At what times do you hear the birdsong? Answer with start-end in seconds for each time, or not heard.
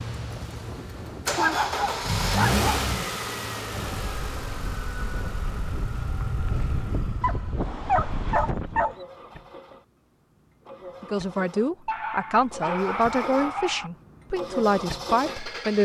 not heard.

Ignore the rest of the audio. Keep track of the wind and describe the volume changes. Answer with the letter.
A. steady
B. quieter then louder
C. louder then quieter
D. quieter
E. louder
E.